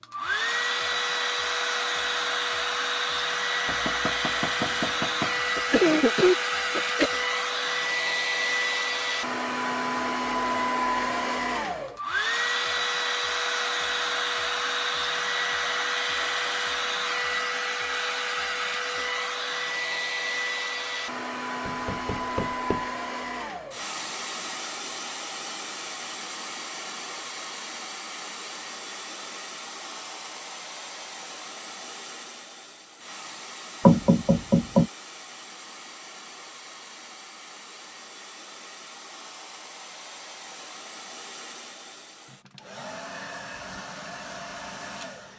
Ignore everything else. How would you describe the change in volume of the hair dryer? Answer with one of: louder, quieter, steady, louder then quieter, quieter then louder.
quieter.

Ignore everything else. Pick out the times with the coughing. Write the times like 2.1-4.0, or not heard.
5.5-7.1.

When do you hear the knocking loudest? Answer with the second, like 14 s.
34 s.